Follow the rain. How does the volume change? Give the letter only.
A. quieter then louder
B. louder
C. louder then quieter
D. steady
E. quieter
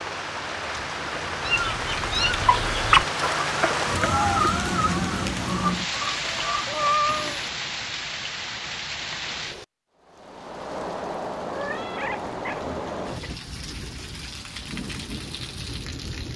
E.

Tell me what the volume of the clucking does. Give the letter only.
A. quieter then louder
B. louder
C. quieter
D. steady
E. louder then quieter
C.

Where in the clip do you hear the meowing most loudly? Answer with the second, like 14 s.
7 s.